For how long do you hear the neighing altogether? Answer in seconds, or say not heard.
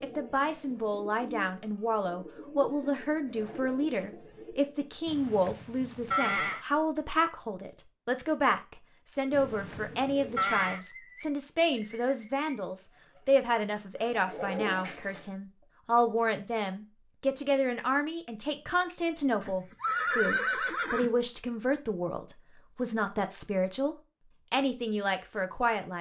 5 s.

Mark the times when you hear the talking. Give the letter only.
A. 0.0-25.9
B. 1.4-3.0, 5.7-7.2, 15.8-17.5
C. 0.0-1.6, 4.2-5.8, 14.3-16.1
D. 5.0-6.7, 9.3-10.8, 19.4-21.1
A.